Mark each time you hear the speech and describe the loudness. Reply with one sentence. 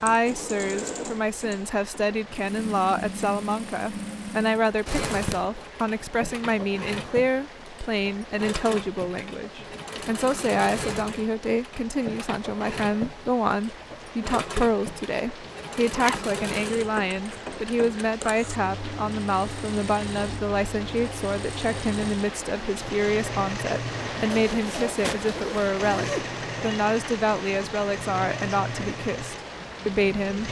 You can hear the speech from 0.0 to 30.4 s, at a steady volume.